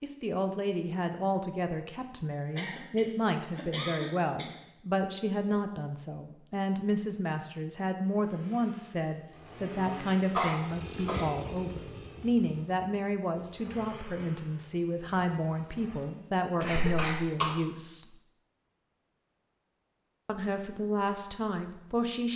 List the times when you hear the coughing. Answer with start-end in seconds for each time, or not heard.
2.5-4.5, 10.3-11.3, 16.6-17.5.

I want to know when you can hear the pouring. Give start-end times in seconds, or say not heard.
not heard.